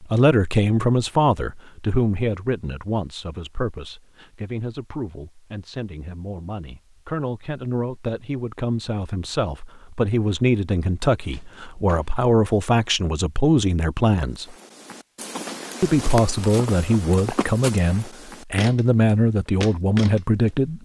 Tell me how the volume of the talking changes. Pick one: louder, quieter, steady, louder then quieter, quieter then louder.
quieter then louder.